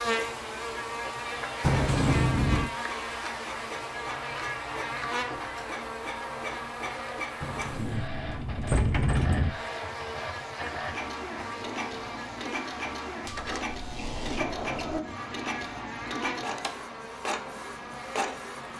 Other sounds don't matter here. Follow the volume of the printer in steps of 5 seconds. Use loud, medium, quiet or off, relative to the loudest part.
medium, loud, loud, loud.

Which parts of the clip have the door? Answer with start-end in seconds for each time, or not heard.
1.6-2.7, 7.4-9.5, 13.3-15.1.